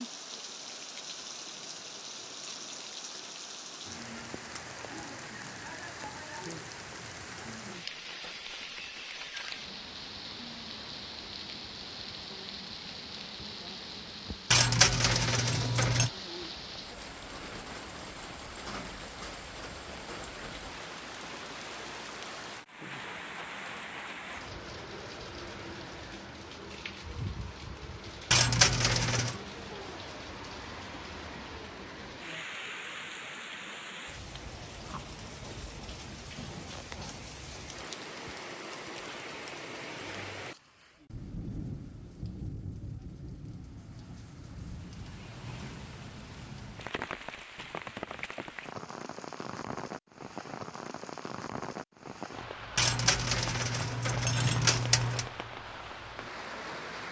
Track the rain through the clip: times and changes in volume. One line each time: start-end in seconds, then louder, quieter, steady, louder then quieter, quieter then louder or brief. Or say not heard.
0.0-57.0 steady.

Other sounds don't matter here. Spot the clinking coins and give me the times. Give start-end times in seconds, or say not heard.
14.5-16.1, 28.3-29.4, 52.8-55.3.